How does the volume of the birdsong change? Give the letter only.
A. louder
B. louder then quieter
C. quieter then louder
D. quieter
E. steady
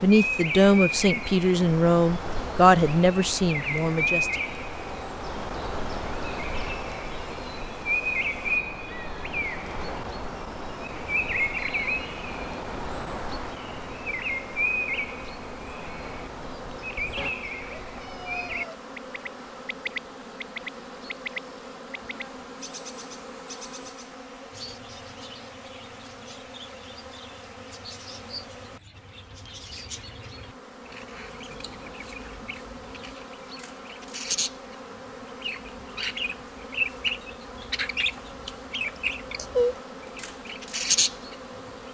C.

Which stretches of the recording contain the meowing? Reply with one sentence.
The meowing can be heard from 17.1 to 18.8 s.